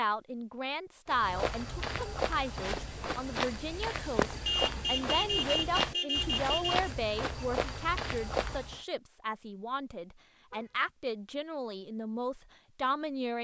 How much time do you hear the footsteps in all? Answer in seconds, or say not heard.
8 s.